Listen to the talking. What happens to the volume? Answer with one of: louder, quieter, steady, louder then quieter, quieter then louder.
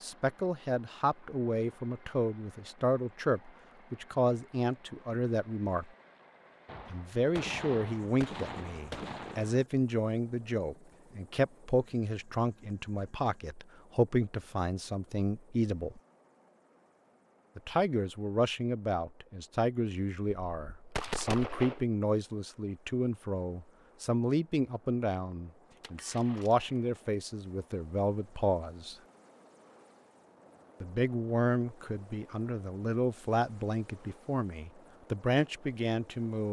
steady.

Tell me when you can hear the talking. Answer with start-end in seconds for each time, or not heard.
0.0-5.9, 6.9-16.0, 17.6-28.9, 30.8-36.4.